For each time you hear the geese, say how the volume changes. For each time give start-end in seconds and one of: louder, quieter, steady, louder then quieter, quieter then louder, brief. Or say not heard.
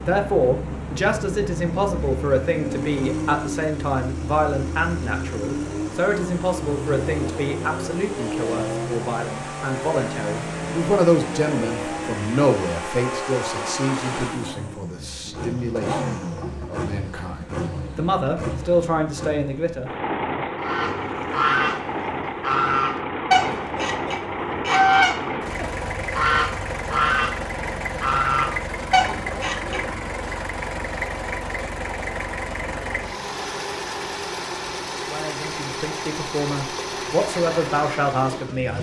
20.6-30.1 steady.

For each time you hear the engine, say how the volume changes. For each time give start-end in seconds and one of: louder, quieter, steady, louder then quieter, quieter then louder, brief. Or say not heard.
0.0-38.7 steady.